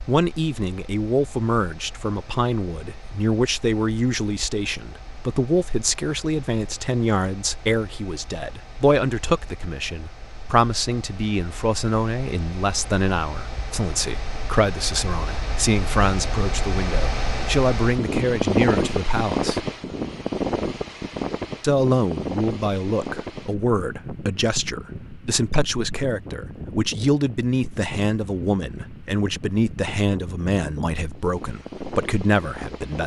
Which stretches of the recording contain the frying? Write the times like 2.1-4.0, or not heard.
not heard.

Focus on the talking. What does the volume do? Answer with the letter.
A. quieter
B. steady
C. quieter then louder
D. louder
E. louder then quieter
B.